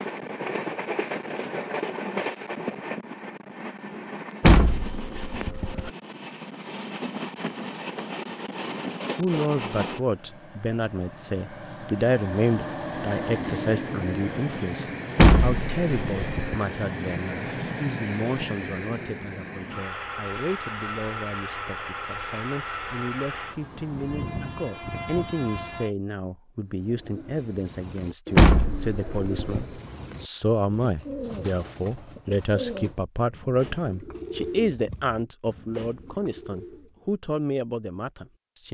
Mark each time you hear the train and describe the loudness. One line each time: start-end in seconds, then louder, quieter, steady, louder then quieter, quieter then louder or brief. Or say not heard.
0.0-25.9 steady.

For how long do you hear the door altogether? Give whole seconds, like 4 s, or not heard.
4 s.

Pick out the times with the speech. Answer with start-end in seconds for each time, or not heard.
9.2-38.6.